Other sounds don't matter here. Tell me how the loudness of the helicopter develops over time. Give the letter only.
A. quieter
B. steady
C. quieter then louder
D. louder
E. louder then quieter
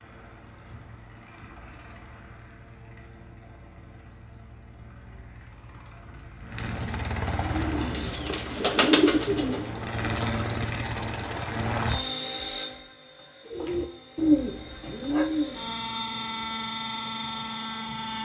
D.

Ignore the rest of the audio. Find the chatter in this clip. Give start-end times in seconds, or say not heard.
not heard.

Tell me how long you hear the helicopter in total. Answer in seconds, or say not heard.
18 s.